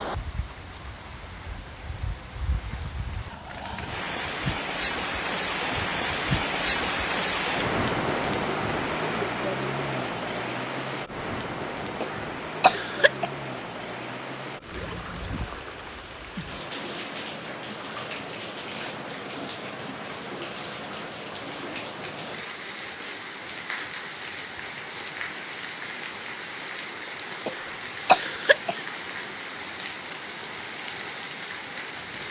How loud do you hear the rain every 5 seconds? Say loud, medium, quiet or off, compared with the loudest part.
medium, loud, medium, medium, medium, medium, medium.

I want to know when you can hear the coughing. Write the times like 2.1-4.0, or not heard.
12.0-13.3, 27.4-28.9.